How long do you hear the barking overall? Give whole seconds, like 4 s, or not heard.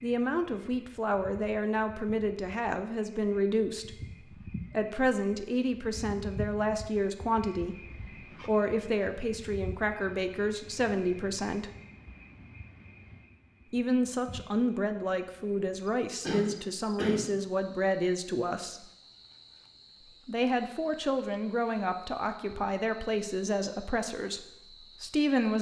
not heard.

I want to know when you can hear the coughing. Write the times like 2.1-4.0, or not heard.
16.2-17.3.